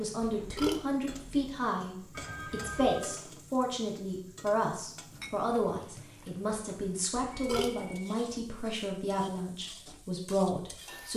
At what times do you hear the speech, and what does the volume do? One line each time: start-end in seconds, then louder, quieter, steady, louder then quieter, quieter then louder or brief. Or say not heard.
0.0-11.1 steady.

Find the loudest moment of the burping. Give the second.
1 s.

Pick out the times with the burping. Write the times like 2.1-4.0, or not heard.
0.2-1.4, 7.2-7.8.